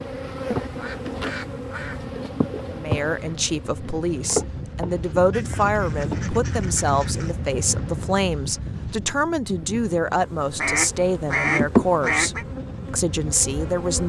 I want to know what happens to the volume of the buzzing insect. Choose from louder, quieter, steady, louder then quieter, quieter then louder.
quieter then louder.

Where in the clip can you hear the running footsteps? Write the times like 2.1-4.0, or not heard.
not heard.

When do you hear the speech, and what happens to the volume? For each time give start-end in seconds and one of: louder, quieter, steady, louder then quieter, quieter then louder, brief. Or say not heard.
2.7-14.0 steady.